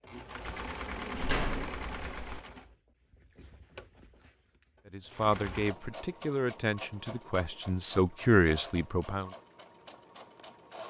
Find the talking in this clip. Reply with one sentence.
You can hear the talking from 4.9 to 9.3 s.